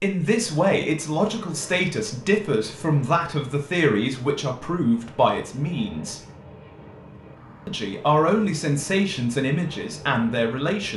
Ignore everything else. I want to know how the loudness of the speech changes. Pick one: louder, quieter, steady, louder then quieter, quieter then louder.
steady.